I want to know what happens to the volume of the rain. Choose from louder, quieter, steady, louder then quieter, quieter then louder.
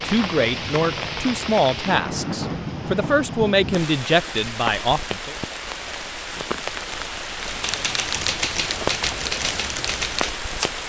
steady.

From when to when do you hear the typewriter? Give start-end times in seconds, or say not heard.
7.5-10.8.